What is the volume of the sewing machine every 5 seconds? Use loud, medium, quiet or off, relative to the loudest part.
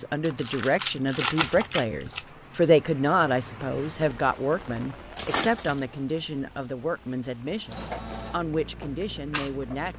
off, loud.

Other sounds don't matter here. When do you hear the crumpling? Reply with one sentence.
The crumpling can be heard from 0.2 to 2.2 s and from 5.2 to 5.8 s.